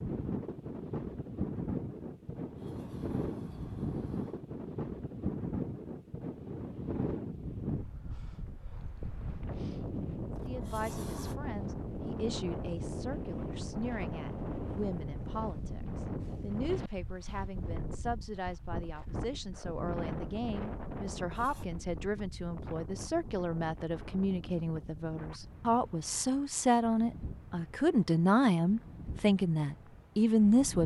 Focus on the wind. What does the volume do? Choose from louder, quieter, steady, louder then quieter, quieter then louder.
quieter.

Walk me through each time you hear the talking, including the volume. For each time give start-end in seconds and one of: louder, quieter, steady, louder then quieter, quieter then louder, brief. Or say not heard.
10.4-30.8 louder.